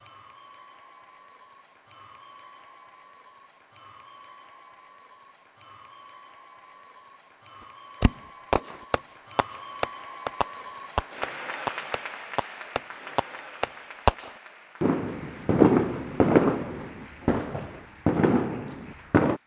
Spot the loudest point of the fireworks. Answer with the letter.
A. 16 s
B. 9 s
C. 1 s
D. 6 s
A.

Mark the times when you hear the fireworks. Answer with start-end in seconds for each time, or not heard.
8.0-19.4.